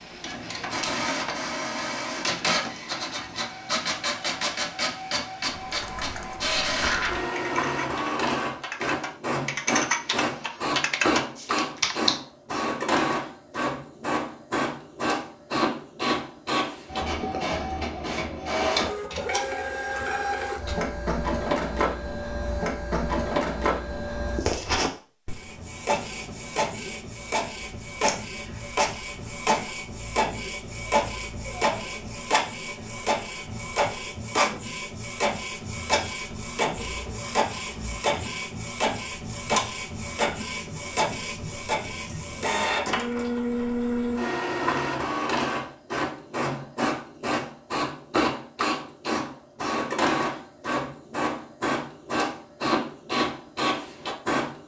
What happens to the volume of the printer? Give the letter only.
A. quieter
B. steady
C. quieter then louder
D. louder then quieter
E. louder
B.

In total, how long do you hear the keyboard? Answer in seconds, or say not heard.
7 s.